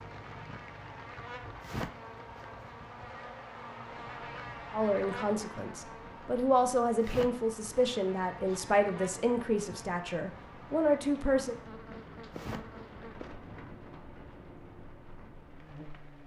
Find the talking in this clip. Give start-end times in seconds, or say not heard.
4.7-11.6.